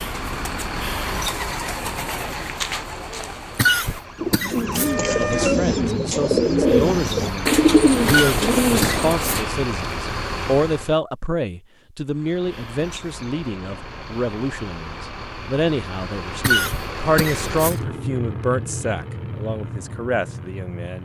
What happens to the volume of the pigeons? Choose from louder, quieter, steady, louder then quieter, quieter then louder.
louder.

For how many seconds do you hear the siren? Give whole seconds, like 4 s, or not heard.
2 s.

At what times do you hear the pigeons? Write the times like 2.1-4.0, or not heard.
0.0-9.5.